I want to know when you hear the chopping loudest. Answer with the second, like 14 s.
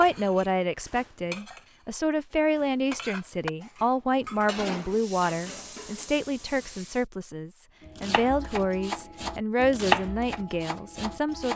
10 s.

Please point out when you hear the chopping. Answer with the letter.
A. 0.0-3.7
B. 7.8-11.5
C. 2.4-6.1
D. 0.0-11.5
B.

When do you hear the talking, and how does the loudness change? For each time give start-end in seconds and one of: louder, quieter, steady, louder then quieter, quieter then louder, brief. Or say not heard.
0.0-11.5 steady.